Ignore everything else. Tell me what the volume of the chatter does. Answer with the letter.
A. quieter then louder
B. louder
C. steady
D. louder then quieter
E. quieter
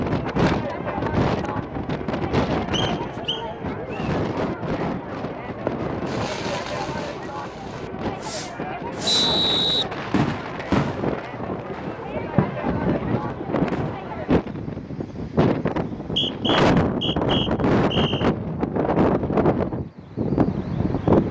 C.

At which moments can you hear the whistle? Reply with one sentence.
The whistle can be heard from 2.7 to 4.1 s, from 9.1 to 9.8 s and from 16.0 to 18.3 s.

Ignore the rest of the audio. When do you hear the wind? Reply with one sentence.
The wind can be heard from 0.0 to 21.2 s.